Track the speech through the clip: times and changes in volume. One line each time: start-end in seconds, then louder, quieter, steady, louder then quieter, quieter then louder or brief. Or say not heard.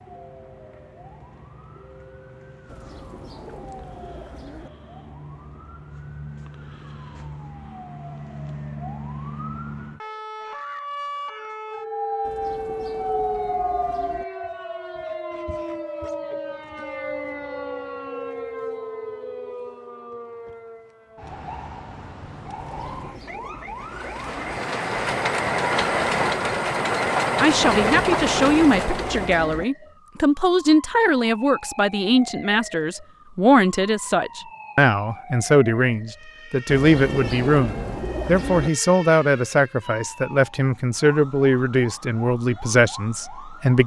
27.4-43.8 steady.